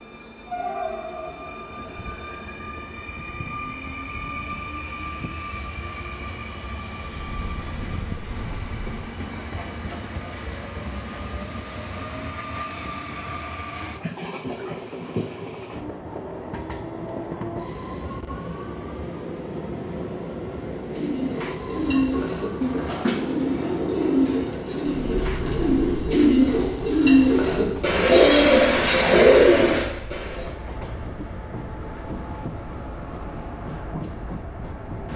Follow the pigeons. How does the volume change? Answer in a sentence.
The loudness of the pigeons goes up.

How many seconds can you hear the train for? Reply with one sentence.
You can hear the train for 35 seconds altogether.